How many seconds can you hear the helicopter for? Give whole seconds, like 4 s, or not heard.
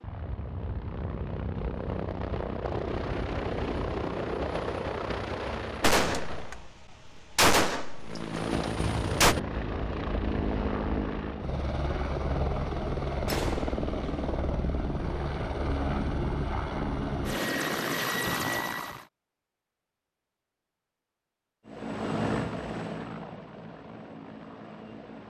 21 s.